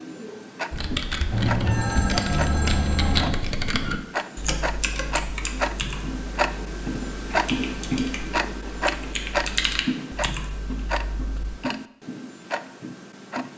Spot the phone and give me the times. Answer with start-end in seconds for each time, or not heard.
1.3-3.4.